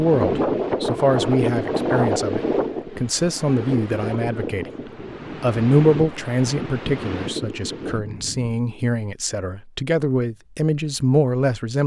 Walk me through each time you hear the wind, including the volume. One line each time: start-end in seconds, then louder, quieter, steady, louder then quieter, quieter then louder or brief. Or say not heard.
0.0-8.6 quieter.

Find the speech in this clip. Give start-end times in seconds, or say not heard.
0.0-4.7, 5.4-11.8.